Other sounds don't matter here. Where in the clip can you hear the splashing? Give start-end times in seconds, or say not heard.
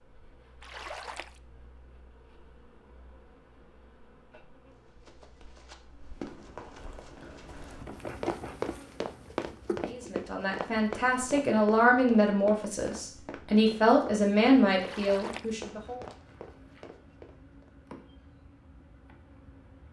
0.6-1.4, 14.8-15.6.